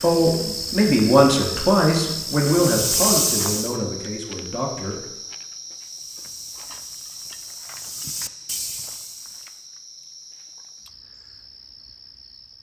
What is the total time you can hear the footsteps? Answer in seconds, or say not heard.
8 s.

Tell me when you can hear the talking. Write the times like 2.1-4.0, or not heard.
0.0-5.0.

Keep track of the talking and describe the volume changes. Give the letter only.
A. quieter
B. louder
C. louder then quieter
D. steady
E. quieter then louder
A.